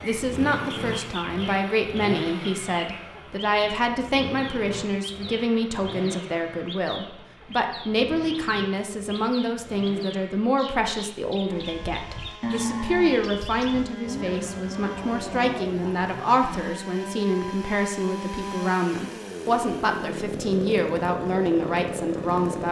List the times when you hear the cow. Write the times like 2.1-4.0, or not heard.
11.5-16.8.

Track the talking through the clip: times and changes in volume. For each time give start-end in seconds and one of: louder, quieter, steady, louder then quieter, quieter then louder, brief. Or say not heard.
0.0-22.6 steady.